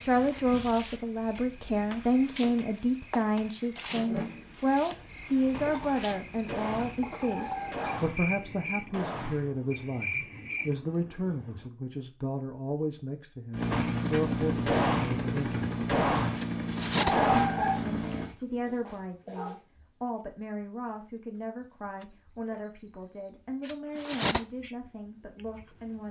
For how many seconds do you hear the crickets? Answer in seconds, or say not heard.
26 s.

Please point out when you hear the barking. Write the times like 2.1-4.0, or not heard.
7.2-8.5, 16.9-19.6.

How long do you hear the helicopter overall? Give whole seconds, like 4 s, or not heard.
5 s.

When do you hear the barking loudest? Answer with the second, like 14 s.
17 s.